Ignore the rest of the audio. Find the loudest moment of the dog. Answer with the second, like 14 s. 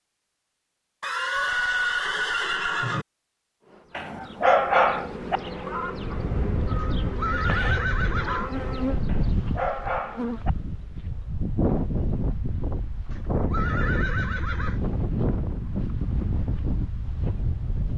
5 s.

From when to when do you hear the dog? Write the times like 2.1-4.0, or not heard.
4.0-5.4, 9.1-10.5.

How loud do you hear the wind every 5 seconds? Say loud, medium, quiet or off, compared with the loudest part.
off, loud, loud, loud.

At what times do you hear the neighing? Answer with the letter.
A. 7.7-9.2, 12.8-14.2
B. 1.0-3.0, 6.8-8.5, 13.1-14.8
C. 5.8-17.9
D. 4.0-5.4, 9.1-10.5
B.